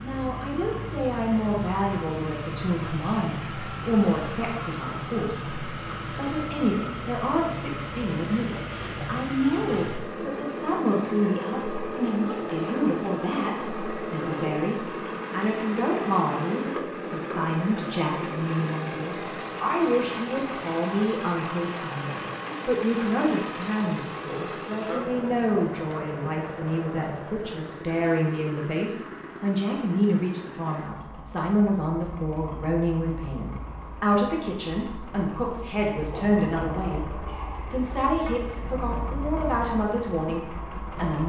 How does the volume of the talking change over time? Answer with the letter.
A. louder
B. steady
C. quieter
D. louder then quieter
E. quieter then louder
B.